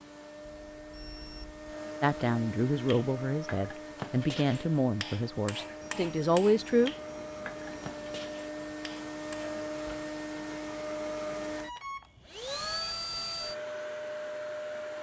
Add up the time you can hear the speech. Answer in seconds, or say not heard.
5 s.